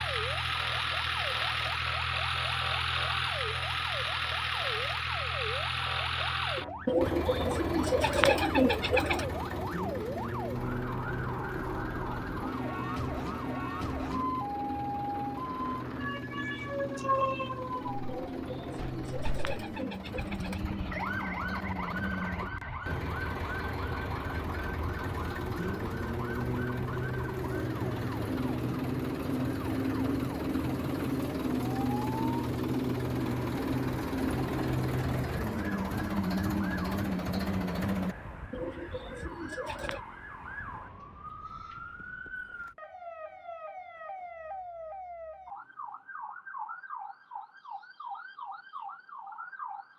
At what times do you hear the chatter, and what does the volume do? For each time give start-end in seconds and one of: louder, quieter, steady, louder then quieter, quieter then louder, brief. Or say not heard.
not heard.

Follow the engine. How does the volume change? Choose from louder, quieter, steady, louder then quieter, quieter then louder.
quieter then louder.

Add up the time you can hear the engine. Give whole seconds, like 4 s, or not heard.
38 s.